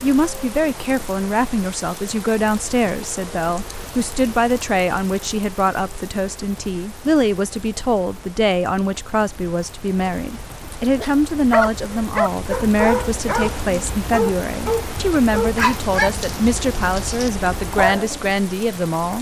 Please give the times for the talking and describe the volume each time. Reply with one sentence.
The talking can be heard from 0.0 to 19.1 s, at a steady volume.